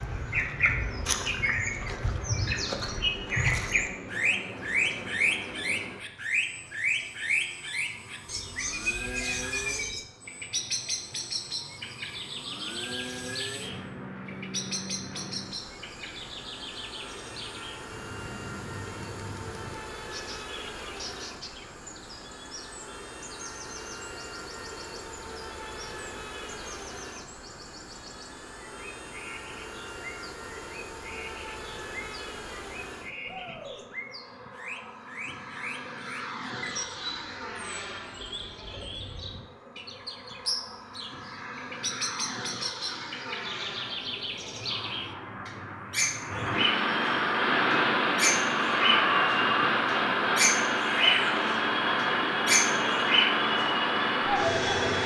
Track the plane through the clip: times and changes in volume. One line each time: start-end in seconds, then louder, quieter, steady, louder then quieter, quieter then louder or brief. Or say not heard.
0.0-55.0 louder.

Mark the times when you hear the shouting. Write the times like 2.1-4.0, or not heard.
9.0-9.8, 33.2-33.9, 50.9-51.5.